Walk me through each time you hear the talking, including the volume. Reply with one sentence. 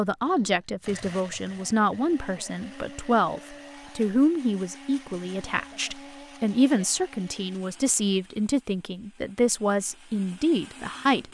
The talking can be heard from 0.0 to 11.2 s, at a steady volume.